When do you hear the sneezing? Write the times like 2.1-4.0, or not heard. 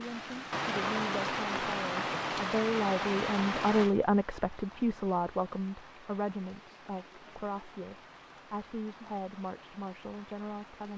not heard.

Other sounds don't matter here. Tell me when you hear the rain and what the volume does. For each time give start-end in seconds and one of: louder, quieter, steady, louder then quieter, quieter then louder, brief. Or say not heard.
0.0-10.9 quieter.